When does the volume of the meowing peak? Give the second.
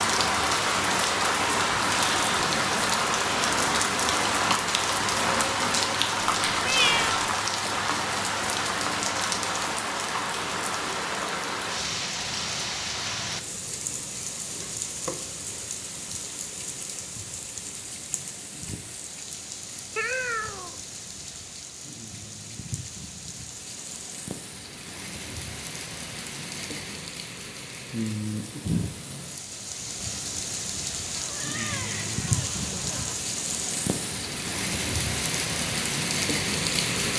7 s.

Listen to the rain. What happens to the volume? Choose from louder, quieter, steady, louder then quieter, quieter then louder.
quieter then louder.